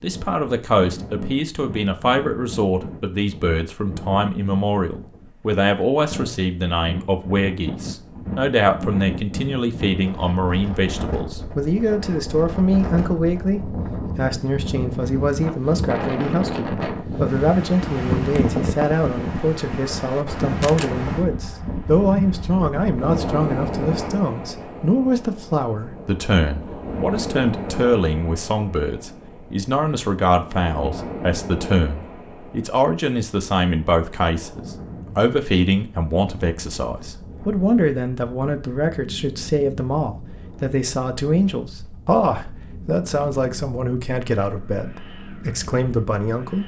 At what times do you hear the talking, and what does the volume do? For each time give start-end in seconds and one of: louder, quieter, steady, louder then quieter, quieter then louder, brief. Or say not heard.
0.0-46.6 steady.